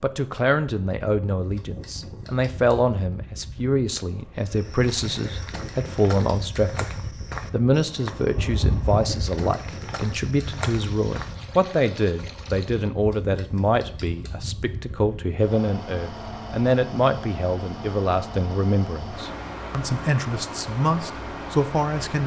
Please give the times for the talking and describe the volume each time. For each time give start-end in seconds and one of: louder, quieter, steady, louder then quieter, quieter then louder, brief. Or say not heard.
0.0-22.2 steady.